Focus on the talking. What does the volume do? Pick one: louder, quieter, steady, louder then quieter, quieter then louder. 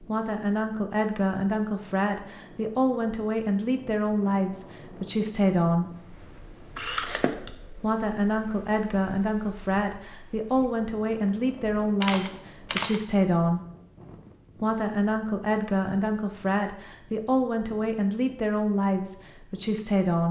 steady.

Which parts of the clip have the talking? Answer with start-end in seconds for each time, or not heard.
0.0-5.9, 7.8-13.6, 14.6-20.2.